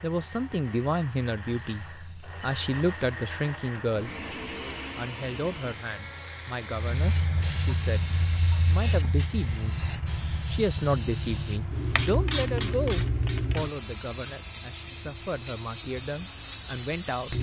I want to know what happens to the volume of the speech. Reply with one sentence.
The volume of the speech goes down.